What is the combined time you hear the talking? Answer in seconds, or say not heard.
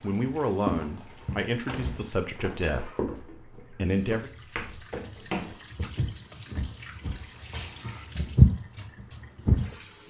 4 s.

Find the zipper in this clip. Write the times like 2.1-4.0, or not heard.
not heard.